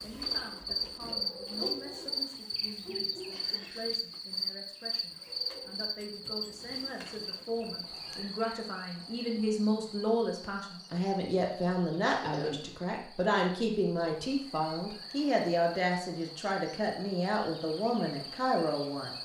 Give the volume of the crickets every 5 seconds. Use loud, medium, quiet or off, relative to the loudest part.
loud, medium, quiet, medium.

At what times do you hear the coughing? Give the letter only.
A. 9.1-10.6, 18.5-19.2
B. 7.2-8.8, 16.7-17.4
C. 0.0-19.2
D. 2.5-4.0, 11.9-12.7
D.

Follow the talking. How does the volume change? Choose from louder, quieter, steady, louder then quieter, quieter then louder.
louder.